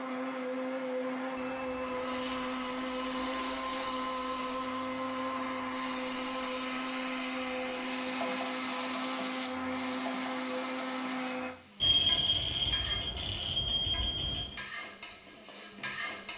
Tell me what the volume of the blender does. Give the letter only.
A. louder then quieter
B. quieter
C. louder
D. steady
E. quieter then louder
D.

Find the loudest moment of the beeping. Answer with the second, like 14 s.
12 s.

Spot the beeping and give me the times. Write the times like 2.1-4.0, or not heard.
1.4-2.5, 11.8-14.6.